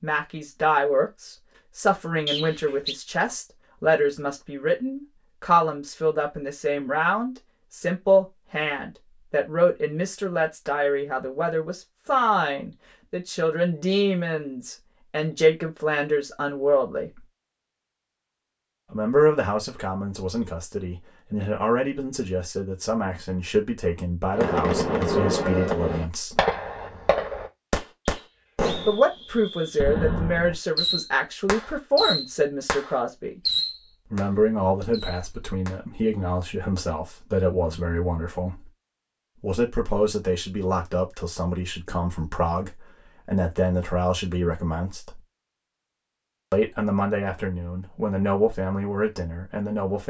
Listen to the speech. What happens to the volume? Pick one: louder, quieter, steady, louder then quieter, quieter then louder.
steady.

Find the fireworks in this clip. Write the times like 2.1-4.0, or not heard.
24.3-35.8.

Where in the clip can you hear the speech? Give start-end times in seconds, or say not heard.
0.0-17.2, 18.9-26.4, 28.9-33.4, 34.1-38.7, 39.4-45.2, 46.5-50.0.